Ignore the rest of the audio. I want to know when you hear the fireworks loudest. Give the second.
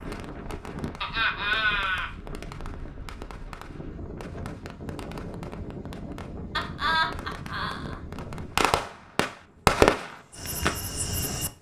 10 s.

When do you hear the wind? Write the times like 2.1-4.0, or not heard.
0.0-11.5.